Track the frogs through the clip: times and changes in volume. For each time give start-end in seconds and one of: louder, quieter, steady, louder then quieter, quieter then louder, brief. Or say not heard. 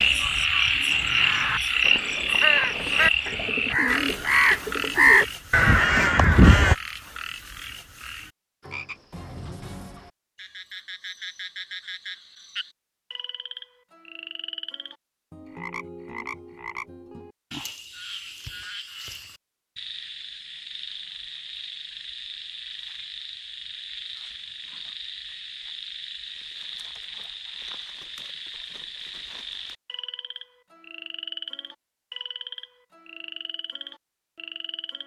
0.0-35.0 quieter.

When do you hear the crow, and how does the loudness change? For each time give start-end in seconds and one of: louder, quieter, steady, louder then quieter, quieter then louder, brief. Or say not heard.
0.9-6.8 louder.